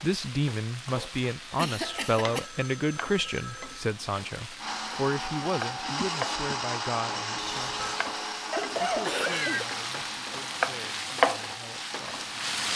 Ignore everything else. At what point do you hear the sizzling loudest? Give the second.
11 s.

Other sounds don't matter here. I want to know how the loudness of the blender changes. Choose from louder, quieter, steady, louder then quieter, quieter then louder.
quieter.